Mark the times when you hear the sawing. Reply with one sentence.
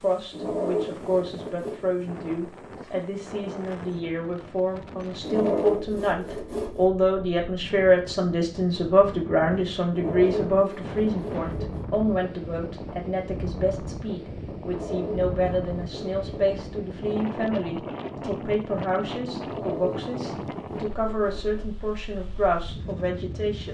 The sawing can be heard from 0.3 to 1.8 s, from 5.2 to 6.9 s, from 9.9 to 11.8 s, from 14.7 to 16.2 s and from 19.4 to 21.7 s.